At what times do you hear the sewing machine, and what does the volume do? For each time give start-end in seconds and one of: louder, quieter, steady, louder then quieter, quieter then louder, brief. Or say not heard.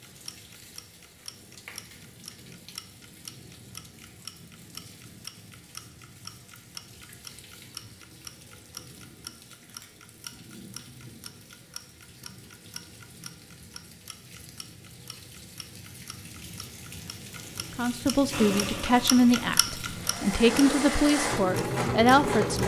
18.3-22.6 quieter then louder.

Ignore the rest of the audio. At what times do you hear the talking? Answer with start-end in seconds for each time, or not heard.
17.8-22.6.